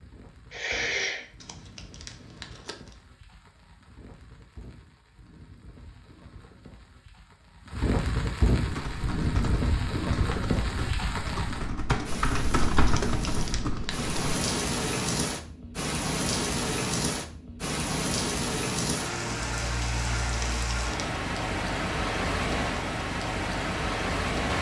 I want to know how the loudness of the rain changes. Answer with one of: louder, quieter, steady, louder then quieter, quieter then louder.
louder.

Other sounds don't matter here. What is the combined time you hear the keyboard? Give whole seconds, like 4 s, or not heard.
6 s.